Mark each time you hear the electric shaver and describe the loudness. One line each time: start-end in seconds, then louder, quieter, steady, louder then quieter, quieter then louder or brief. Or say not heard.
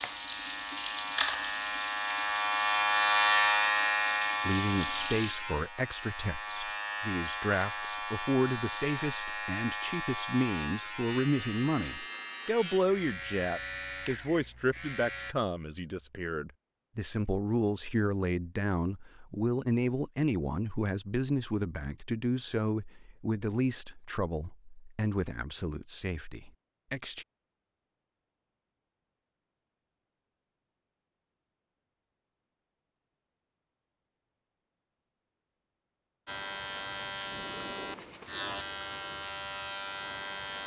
0.0-15.3 quieter
36.2-40.6 steady.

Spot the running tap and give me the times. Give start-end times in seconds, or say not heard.
0.0-5.3.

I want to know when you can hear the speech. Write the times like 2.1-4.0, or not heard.
4.5-27.2.